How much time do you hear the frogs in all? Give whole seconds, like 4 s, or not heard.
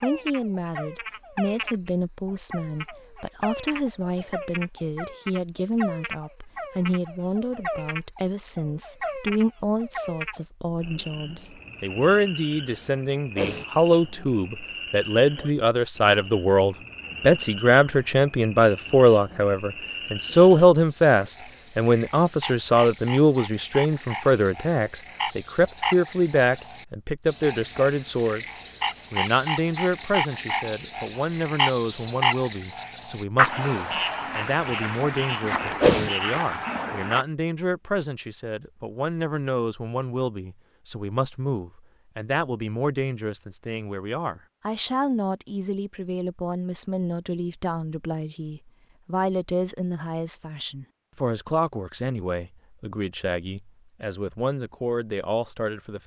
37 s.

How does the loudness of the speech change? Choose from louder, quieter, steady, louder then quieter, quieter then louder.
louder then quieter.